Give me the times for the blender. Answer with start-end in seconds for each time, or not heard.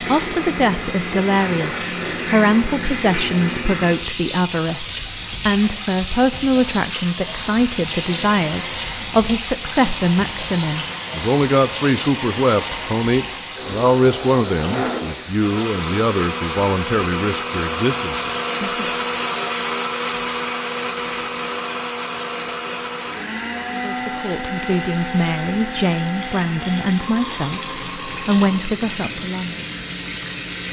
7.2-28.6.